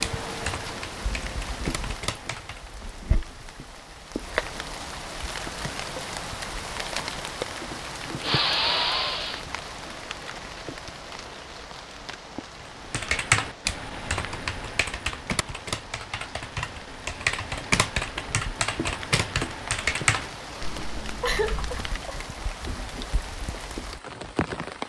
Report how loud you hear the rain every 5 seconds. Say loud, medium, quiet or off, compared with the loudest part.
loud, loud, medium, medium, loud.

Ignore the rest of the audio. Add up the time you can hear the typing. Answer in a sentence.
The typing can be heard for 12 seconds in total.